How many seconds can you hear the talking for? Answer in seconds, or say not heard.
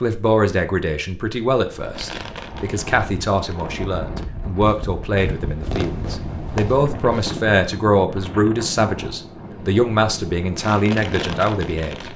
12 s.